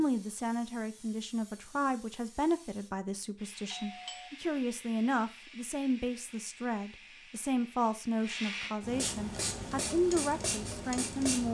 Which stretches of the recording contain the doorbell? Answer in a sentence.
The doorbell can be heard from 3.6 to 4.3 s.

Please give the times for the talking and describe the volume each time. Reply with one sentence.
The talking can be heard from 0.0 to 11.4 s, at a steady volume.